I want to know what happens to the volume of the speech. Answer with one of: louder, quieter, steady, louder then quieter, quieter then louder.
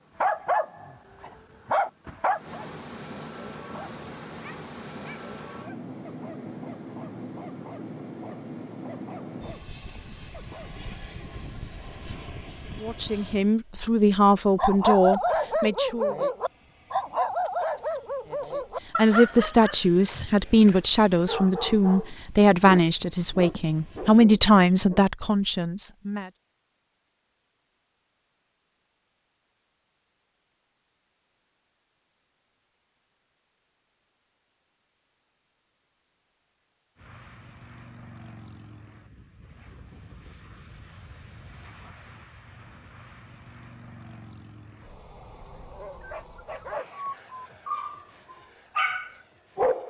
steady.